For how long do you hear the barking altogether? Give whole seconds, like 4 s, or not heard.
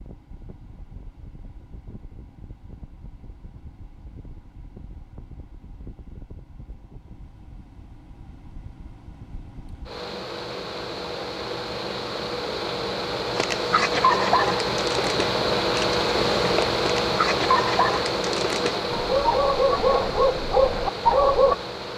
8 s.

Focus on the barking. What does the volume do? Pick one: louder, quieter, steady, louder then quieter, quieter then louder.
quieter then louder.